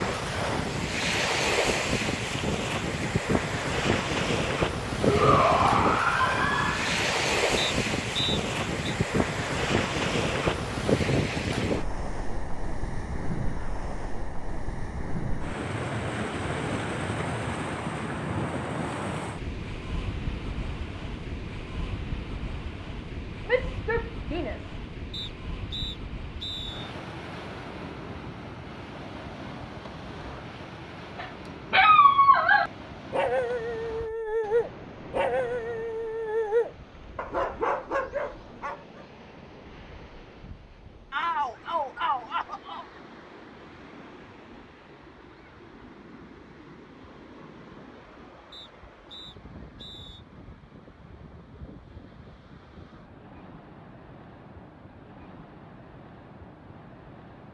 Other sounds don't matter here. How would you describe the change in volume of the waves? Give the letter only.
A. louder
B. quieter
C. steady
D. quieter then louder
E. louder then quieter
B.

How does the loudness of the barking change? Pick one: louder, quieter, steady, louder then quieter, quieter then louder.
quieter.